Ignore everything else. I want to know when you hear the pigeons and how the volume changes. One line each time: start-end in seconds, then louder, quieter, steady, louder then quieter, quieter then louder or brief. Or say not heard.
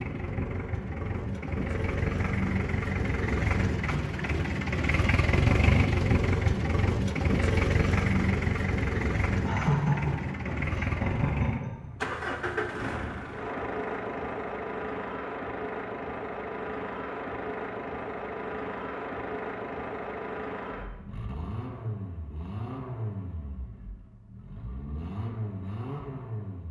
not heard.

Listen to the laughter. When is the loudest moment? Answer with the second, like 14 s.
10 s.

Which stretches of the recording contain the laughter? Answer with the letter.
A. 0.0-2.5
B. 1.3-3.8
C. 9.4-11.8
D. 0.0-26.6
C.